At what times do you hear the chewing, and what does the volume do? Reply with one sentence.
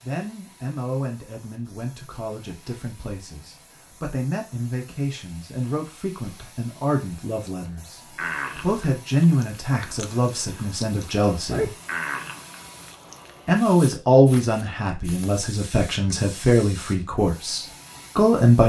You can hear the chewing from 8.2 to 13.3 s, getting louder then quieter.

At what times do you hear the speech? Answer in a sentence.
You can hear the speech from 0.0 to 8.0 s, from 8.6 to 11.7 s and from 13.4 to 18.6 s.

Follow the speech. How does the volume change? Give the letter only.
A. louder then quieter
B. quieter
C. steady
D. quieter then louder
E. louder
E.